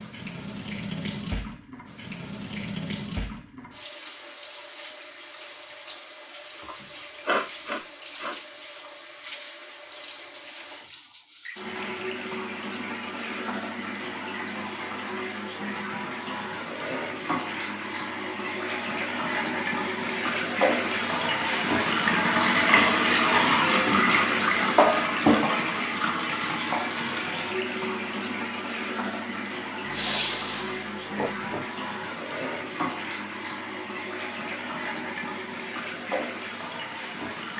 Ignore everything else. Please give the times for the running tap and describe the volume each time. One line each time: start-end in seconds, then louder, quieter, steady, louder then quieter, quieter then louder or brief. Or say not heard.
0.0-37.5 louder then quieter.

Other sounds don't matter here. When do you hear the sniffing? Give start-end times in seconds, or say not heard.
6.6-8.3, 29.9-31.6.